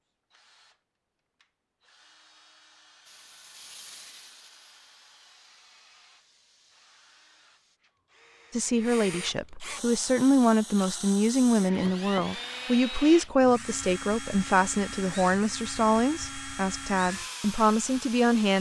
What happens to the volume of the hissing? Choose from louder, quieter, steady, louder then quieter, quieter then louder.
quieter.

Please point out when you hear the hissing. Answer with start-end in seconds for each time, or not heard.
3.0-7.8.